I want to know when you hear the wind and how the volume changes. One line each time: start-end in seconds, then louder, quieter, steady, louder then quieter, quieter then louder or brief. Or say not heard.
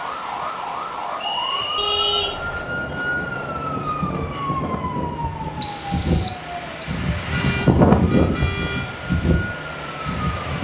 2.4-10.5 louder then quieter.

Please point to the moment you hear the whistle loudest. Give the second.
6 s.